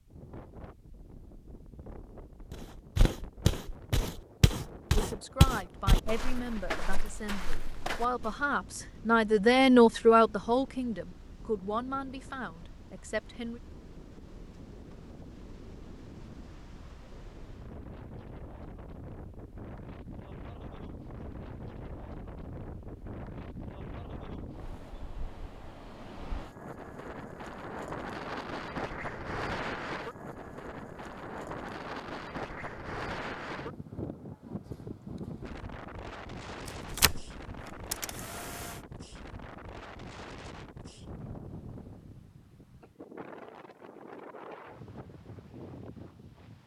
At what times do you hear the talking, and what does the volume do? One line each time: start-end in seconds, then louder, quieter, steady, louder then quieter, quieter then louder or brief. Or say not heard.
4.9-13.6 louder then quieter.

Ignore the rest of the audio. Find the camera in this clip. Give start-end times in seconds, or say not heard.
36.6-38.8.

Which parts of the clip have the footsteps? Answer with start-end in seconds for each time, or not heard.
2.5-8.3.